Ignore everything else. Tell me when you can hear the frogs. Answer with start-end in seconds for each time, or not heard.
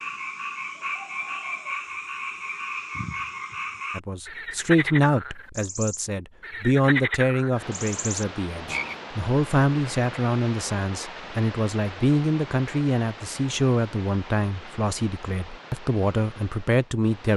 0.0-9.0.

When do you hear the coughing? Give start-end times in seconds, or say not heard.
not heard.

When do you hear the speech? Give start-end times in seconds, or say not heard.
4.0-17.3.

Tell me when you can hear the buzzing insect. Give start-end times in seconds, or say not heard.
not heard.